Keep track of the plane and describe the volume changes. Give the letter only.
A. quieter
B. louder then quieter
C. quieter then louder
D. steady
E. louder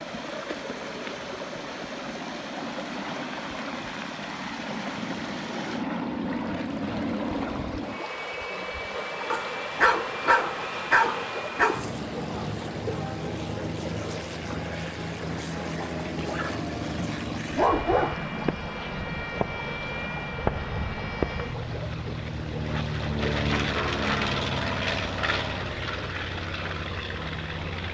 E.